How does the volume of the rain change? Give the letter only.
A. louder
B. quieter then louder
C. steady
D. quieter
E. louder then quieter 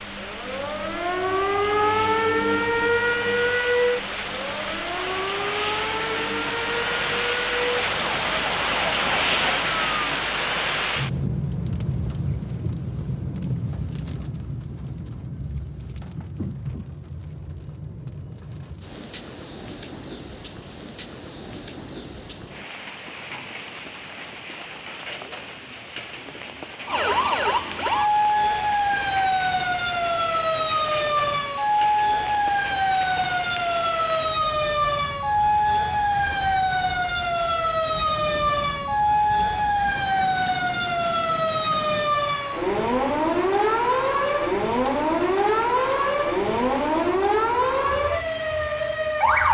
D.